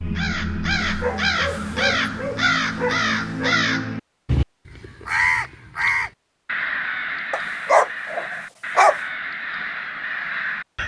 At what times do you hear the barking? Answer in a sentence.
The barking can be heard from 0.8 to 3.5 s and from 7.3 to 9.0 s.